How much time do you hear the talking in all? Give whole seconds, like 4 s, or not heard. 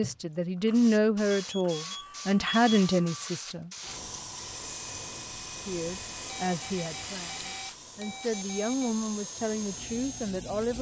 9 s.